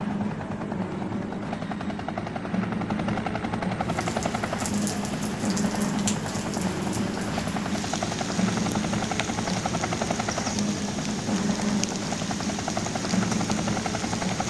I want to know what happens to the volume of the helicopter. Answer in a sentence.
The loudness of the helicopter stays about the same.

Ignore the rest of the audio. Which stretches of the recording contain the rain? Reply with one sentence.
The rain can be heard from 3.8 to 14.4 s.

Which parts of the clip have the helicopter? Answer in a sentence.
The helicopter can be heard from 0.0 to 14.4 s.